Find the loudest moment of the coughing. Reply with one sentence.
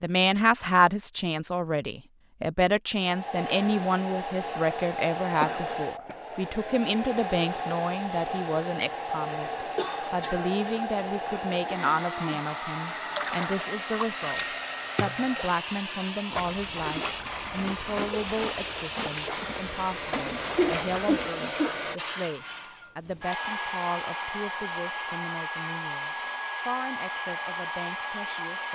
The volume of the coughing peaks at 21 seconds.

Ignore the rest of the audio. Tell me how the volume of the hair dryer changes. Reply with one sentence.
The volume of the hair dryer stays about the same.